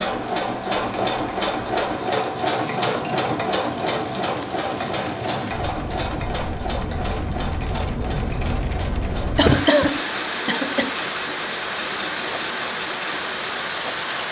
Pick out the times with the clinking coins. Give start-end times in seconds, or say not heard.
not heard.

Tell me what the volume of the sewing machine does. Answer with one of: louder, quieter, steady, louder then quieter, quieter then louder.
quieter.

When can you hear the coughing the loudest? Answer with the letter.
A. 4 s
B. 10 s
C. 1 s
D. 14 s
B.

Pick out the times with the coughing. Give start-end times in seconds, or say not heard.
9.3-10.9.